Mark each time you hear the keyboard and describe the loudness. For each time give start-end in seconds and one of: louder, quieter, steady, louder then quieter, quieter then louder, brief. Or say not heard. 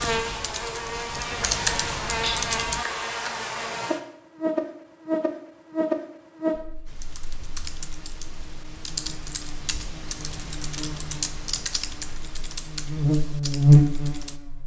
0.0-2.9 brief
6.8-14.4 louder then quieter.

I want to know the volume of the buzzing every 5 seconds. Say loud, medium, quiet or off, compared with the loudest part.
medium, medium, loud.